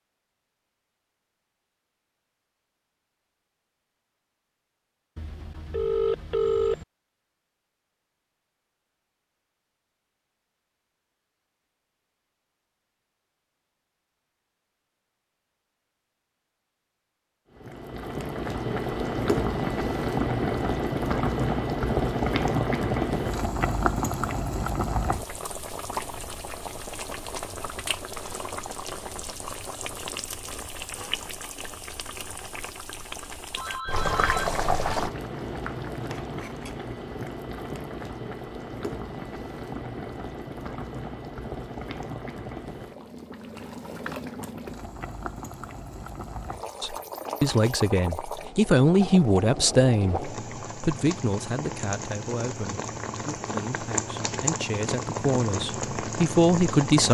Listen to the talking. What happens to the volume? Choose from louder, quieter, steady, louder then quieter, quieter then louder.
quieter then louder.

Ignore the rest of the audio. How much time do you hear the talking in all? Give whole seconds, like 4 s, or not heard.
10 s.